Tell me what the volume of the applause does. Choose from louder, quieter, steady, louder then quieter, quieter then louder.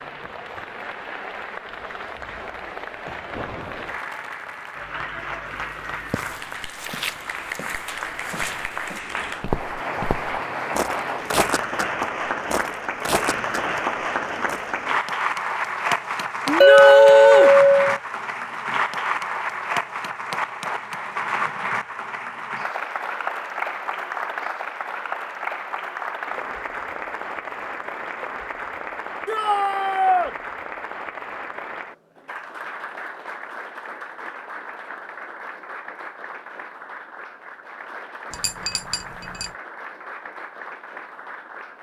louder then quieter.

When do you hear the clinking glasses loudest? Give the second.
17 s.